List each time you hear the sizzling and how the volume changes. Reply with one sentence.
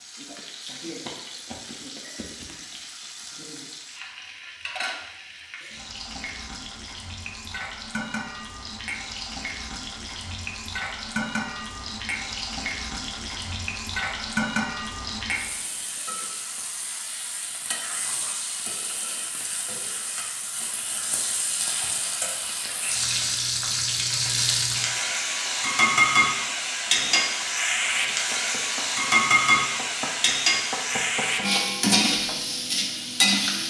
You can hear the sizzling from 0.0 to 33.6 s, getting louder.